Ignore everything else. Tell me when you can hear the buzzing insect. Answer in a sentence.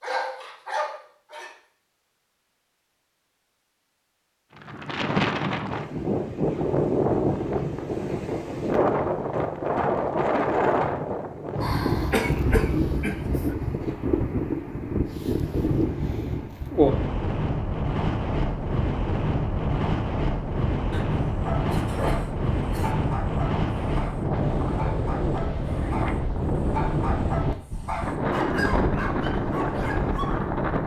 The buzzing insect can't be heard in this clip.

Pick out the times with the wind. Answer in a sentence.
The wind can be heard from 4.5 to 30.8 s.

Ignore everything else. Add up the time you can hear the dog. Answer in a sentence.
You can hear the dog for 11 seconds altogether.